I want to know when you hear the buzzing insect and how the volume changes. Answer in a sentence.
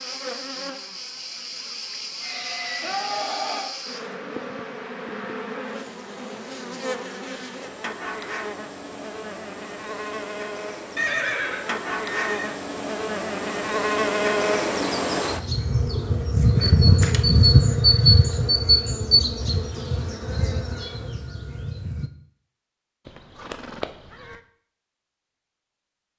You can hear the buzzing insect from 0.0 to 22.1 s, getting louder.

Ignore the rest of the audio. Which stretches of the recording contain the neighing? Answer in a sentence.
You can hear the neighing from 2.2 to 3.7 s, from 10.9 to 12.6 s and from 23.1 to 24.4 s.